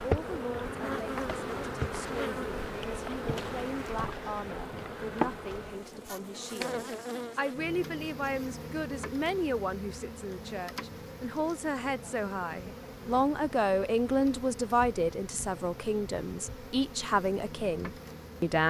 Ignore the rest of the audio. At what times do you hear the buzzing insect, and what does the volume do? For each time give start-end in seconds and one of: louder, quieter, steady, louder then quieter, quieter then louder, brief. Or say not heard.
0.0-18.6 quieter.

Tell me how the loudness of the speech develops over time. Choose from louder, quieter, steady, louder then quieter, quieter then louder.
louder.